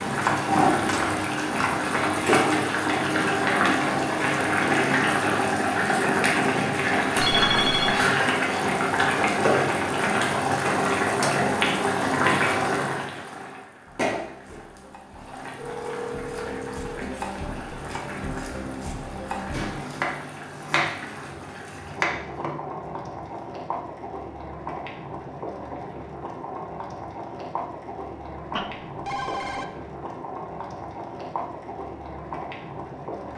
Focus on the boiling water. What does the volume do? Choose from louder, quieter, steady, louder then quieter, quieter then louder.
quieter.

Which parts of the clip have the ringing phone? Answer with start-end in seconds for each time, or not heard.
7.2-8.1, 15.6-17.1, 28.6-29.6.